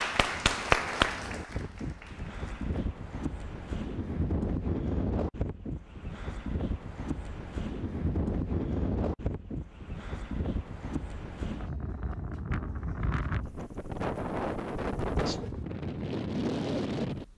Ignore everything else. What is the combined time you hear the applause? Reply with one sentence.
You can hear the applause for 3 seconds altogether.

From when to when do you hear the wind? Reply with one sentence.
The wind can be heard from 0.0 to 17.3 s.